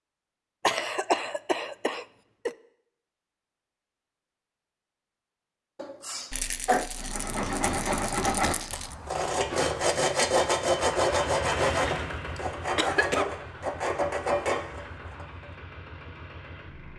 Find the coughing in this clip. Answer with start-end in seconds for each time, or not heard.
0.6-2.5, 5.8-6.9, 12.3-13.2.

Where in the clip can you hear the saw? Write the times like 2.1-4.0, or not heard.
7.0-15.4.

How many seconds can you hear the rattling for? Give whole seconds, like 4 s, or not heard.
3 s.